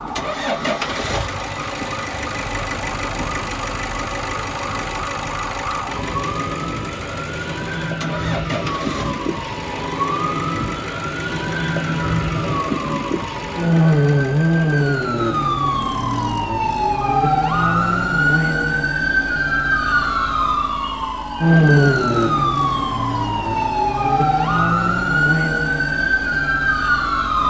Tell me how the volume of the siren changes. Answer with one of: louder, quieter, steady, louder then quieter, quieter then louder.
louder.